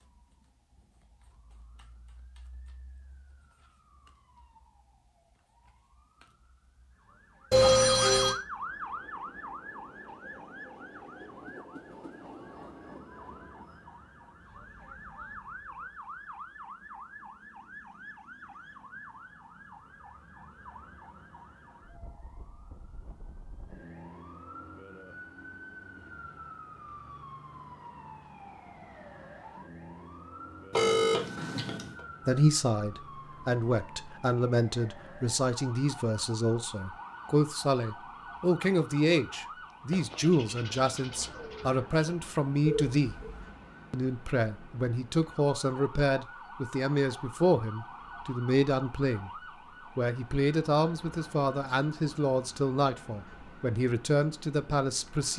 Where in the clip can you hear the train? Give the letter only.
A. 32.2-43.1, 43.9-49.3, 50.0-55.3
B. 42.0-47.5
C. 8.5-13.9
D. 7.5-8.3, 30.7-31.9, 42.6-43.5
C.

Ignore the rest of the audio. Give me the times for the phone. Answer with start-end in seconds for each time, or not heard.
7.5-8.3, 30.7-31.9, 42.6-43.5.